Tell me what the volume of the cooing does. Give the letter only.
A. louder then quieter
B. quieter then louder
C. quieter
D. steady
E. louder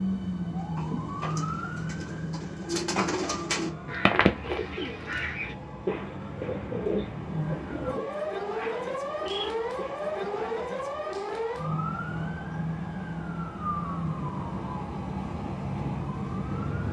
A.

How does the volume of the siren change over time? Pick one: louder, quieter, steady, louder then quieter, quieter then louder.
quieter then louder.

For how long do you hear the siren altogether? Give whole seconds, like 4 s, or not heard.
17 s.